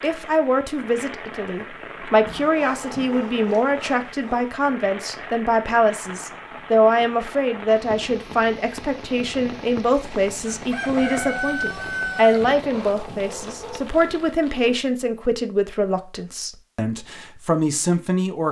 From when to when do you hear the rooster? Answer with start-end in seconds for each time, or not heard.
10.0-12.4.